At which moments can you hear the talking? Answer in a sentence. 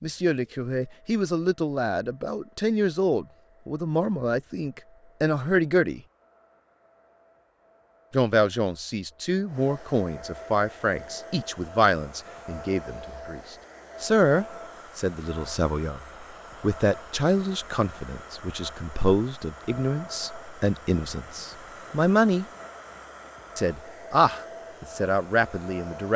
The talking can be heard from 0.0 to 6.0 s, from 8.1 to 22.4 s and from 23.6 to 26.1 s.